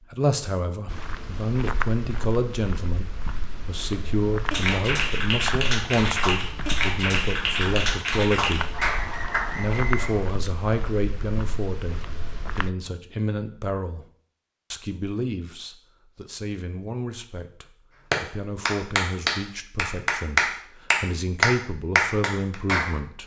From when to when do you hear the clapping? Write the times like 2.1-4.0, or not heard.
4.5-9.4, 18.1-22.9.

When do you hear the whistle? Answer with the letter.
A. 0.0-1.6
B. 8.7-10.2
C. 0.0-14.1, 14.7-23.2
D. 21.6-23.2
B.